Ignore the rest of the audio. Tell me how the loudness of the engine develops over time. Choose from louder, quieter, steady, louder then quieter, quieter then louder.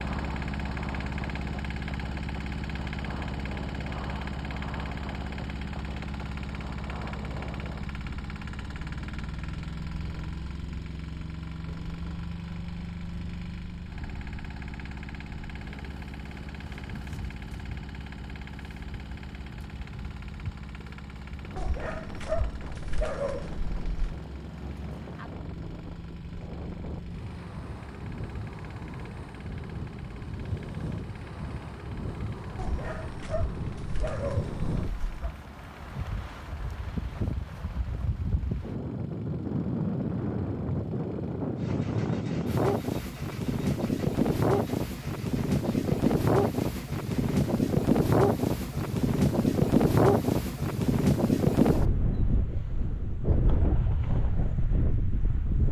quieter.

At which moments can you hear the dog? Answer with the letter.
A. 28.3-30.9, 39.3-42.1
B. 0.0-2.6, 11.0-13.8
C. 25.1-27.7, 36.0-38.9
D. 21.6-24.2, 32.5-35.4
D.